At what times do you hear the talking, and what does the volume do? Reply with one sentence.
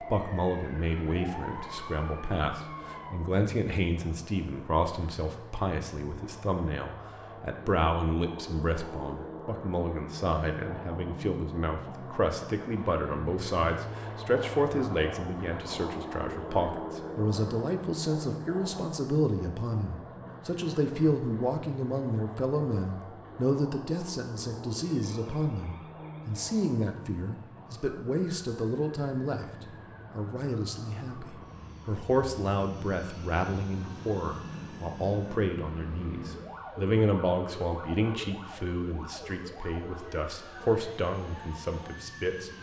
The talking can be heard from 0.0 to 42.5 s, at a steady volume.